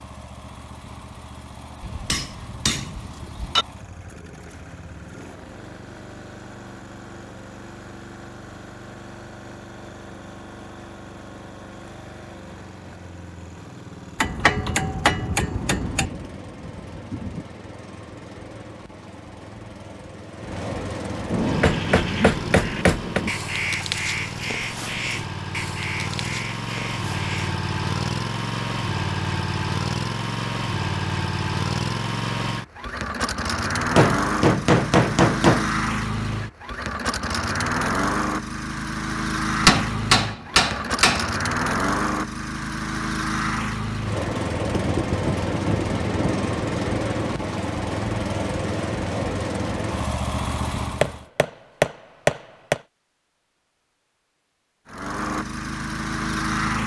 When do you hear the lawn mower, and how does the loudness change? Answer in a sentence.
The lawn mower can be heard from 0.0 to 51.2 s, getting louder; and briefly from 54.9 to 56.8 s.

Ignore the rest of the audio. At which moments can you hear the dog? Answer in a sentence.
You can't hear the dog here.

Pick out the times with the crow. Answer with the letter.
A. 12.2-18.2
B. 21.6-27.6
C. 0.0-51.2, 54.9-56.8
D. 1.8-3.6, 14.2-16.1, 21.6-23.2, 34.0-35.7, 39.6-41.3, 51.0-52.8
B.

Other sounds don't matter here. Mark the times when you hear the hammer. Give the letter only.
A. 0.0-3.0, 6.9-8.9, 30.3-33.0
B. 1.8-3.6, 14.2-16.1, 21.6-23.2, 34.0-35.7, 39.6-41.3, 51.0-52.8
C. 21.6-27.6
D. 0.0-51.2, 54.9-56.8
B.